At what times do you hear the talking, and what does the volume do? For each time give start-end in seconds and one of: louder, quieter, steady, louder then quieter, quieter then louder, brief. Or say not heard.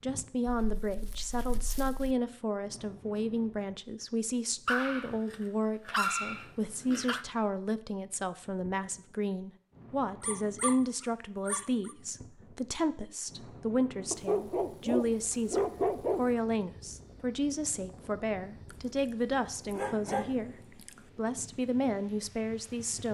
0.0-23.0 steady.